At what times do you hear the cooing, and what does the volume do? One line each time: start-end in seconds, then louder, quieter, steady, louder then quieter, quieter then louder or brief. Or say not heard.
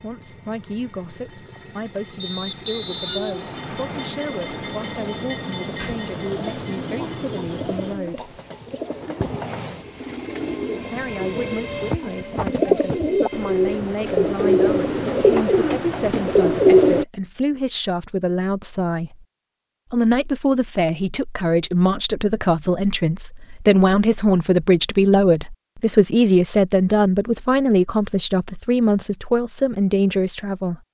5.8-17.1 louder.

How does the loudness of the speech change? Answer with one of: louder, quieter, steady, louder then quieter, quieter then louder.
louder.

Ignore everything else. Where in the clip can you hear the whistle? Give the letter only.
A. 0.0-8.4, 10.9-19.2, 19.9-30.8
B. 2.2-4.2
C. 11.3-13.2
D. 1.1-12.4
B.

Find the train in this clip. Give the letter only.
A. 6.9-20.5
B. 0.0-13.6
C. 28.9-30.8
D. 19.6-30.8
B.